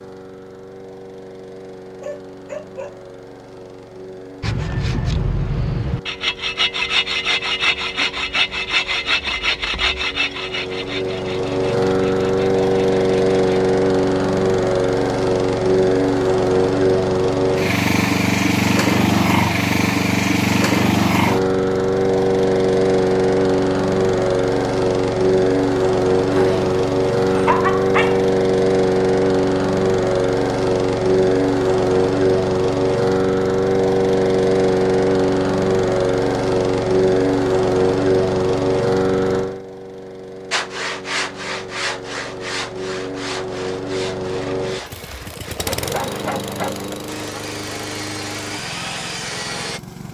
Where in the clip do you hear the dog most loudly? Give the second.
28 s.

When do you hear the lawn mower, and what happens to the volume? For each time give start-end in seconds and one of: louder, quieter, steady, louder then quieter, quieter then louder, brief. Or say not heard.
0.0-50.0 louder then quieter.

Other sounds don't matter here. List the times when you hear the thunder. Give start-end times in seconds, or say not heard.
not heard.